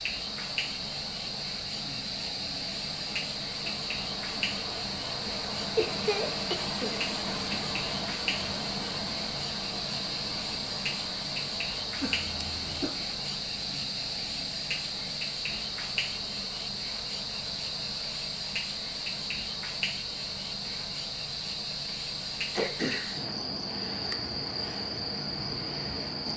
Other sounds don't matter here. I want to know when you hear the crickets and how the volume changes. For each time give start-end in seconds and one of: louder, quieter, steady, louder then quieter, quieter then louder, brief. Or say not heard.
0.0-26.3 steady.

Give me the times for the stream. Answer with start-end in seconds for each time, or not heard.
0.0-26.3.